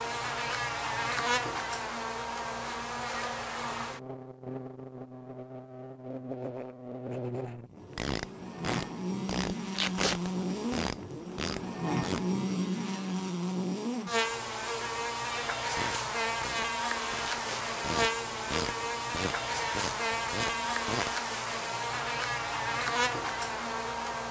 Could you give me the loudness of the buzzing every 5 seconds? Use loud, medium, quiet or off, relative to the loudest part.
loud, medium, loud, loud, loud.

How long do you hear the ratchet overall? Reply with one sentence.
The ratchet can be heard for 10 seconds in total.